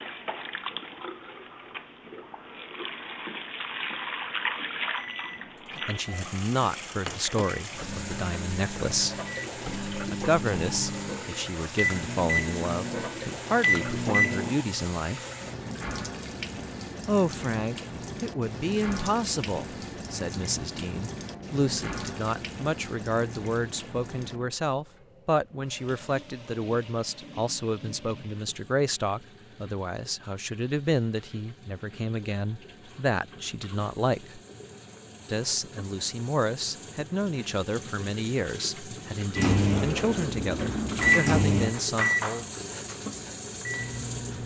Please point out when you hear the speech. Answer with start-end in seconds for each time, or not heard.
5.8-9.2, 10.1-15.2, 17.1-34.4, 35.3-42.5.